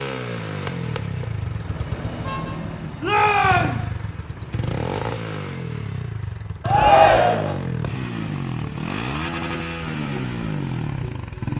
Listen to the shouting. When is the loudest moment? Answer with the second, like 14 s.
7 s.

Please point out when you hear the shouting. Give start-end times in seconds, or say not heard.
3.0-3.9, 6.6-7.5.